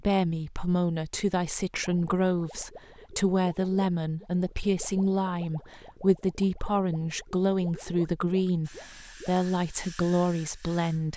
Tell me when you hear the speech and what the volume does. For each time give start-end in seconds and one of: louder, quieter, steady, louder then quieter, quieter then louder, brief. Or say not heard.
0.0-11.1 steady.